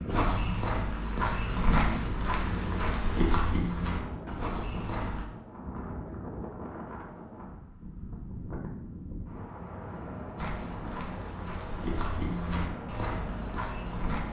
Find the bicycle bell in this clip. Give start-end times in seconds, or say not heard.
not heard.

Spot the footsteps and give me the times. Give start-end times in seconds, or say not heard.
0.1-5.2, 10.3-14.2.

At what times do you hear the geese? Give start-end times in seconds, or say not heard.
not heard.